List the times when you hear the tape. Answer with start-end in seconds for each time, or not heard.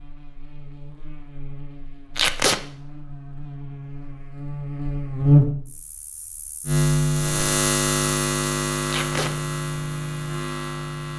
2.1-2.6, 8.8-9.3.